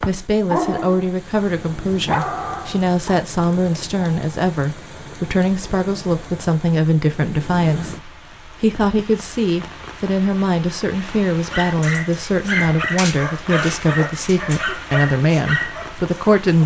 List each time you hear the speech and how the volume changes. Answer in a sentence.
You can hear the speech from 0.1 to 16.6 s, at a steady volume.